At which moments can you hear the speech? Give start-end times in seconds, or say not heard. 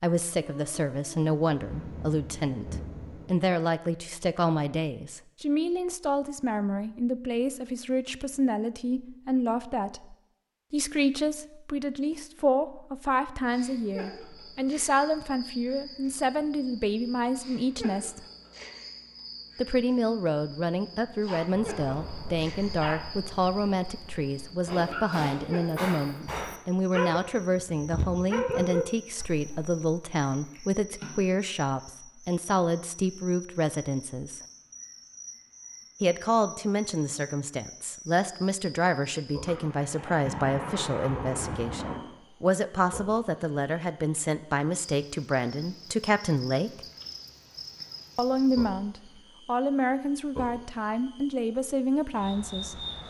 0.0-18.2, 19.6-34.4, 36.0-46.8, 48.1-52.8.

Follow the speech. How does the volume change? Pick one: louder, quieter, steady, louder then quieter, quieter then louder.
steady.